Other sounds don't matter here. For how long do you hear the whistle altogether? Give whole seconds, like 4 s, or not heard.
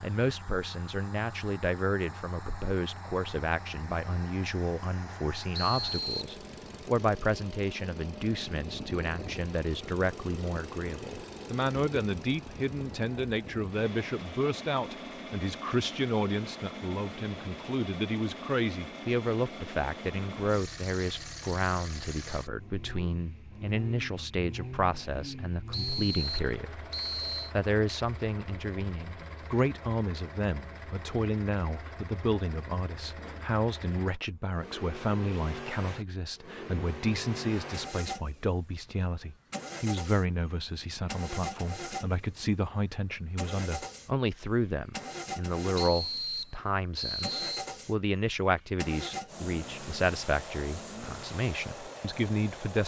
4 s.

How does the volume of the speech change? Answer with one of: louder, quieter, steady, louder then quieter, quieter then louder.
steady.